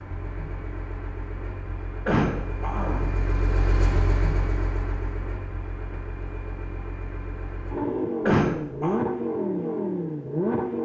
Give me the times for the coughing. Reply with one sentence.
You can hear the coughing from 2.0 to 3.2 s and from 8.2 to 9.0 s.